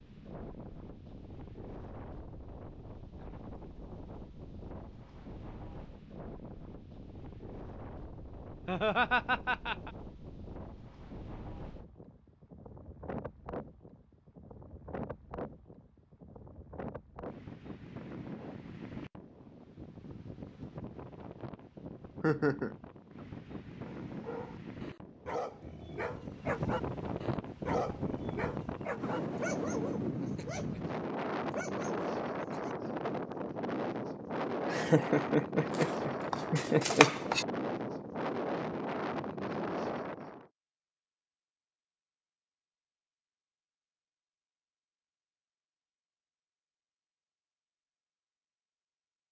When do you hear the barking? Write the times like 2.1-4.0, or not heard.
23.8-32.8.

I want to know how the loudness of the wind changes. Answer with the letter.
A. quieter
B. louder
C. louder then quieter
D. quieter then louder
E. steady
B.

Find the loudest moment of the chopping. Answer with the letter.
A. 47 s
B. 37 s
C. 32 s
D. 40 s
B.